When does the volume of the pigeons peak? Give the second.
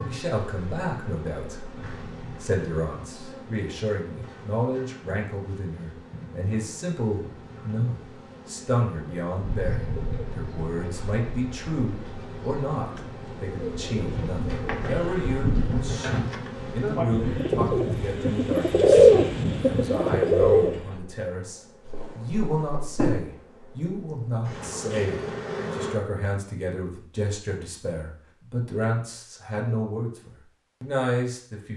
19 s.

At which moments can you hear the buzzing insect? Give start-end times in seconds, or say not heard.
0.0-26.0.